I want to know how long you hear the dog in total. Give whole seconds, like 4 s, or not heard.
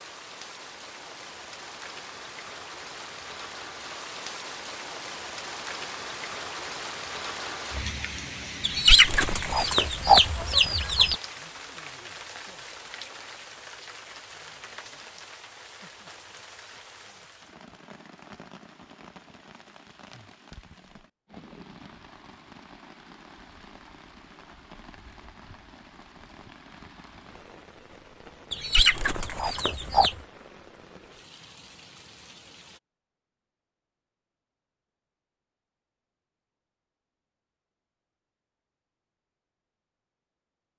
not heard.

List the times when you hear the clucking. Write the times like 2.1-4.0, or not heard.
8.6-11.2, 28.5-30.1.